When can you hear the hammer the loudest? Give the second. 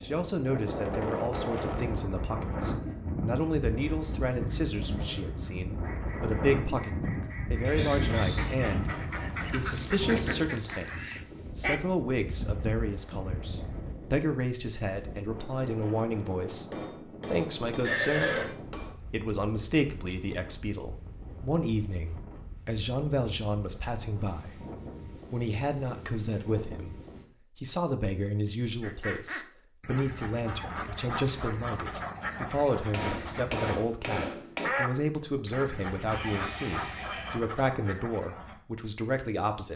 34 s.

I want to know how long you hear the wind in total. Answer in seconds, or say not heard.
27 s.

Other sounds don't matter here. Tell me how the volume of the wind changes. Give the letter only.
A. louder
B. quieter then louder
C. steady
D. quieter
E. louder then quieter
D.